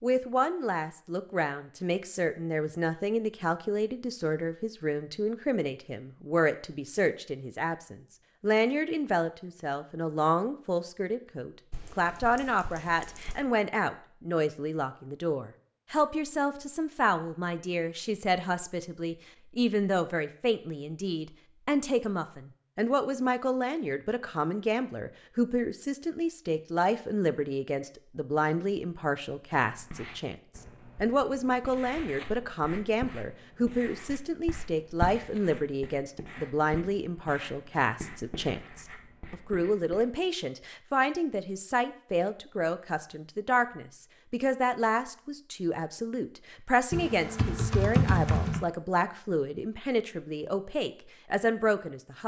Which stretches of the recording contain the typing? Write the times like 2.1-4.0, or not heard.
11.7-13.4, 46.9-48.6.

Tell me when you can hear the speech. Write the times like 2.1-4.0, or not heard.
0.0-30.4, 31.0-52.2.